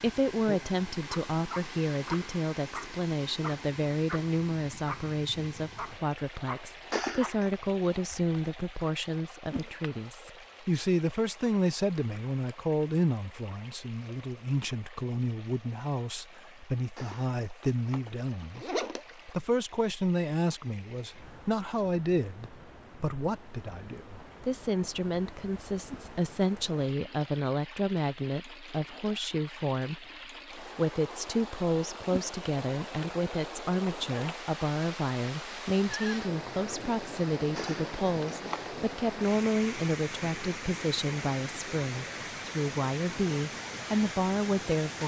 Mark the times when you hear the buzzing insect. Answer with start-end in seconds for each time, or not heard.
not heard.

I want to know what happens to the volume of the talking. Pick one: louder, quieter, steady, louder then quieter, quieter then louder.
steady.